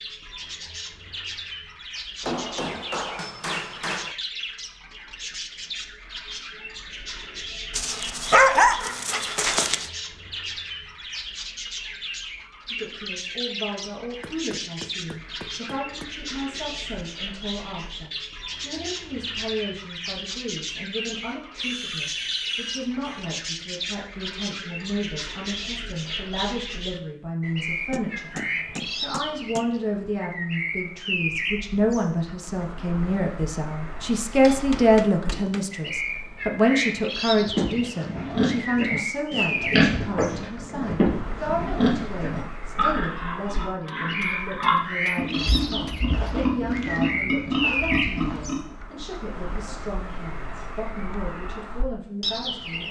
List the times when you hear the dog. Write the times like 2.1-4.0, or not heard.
7.7-9.8.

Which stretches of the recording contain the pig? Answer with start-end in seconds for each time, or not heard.
21.1-23.3, 37.4-48.6.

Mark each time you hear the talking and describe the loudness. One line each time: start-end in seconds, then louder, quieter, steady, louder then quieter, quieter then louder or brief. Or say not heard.
12.7-52.8 louder then quieter.